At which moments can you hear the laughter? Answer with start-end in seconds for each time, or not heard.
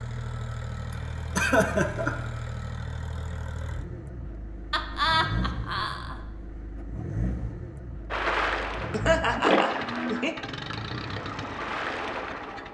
0.9-2.1, 4.7-6.5, 8.9-10.3.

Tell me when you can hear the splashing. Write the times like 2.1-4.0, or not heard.
8.1-12.7.